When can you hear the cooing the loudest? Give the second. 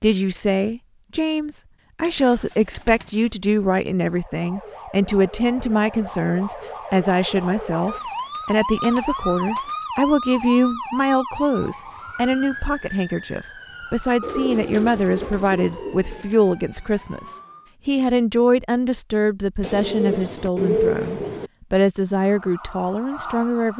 21 s.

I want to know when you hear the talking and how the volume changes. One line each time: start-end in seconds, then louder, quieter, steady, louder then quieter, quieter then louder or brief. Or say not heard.
0.0-23.7 steady.